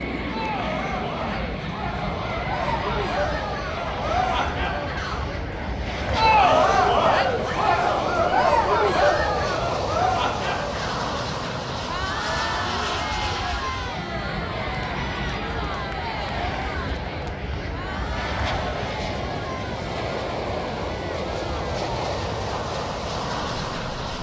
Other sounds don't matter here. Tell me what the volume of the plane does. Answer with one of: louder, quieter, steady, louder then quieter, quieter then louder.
steady.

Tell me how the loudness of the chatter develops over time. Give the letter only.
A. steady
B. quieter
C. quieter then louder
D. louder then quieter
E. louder
D.